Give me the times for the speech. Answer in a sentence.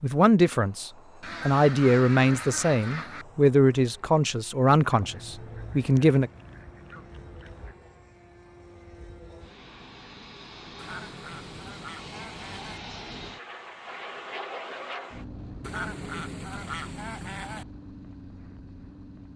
The speech can be heard from 0.0 to 6.3 s.